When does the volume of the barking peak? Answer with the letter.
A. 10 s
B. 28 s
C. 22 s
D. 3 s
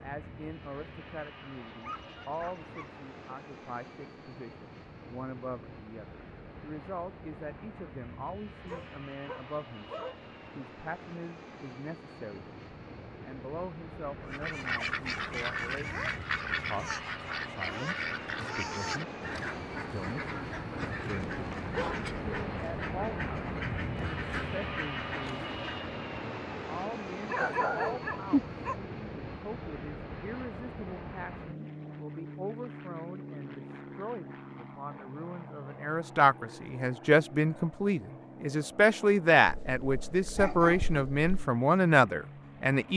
B.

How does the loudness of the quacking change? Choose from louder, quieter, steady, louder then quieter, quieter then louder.
quieter.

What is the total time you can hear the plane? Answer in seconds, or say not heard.
43 s.